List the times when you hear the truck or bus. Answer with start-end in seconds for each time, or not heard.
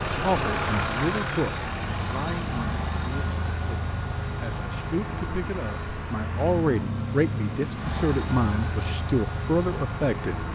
0.0-10.5.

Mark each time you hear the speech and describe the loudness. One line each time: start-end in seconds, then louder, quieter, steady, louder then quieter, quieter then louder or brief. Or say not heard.
0.1-10.4 quieter then louder.